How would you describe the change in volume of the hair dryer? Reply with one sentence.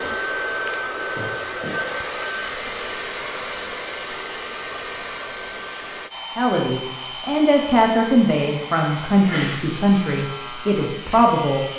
The loudness of the hair dryer goes down.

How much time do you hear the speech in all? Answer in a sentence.
You can hear the speech for 5 seconds altogether.